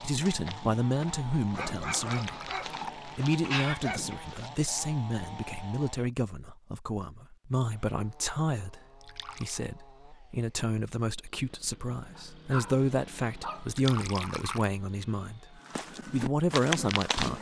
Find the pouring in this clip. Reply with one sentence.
The pouring can be heard from 1.8 to 3.1 s, from 9.0 to 9.6 s and from 13.7 to 14.7 s.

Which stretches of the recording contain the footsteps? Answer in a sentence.
The footsteps can be heard from 0.0 to 4.9 s and from 15.7 to 17.3 s.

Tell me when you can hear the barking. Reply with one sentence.
You can hear the barking from 1.5 to 4.2 s and from 12.2 to 13.8 s.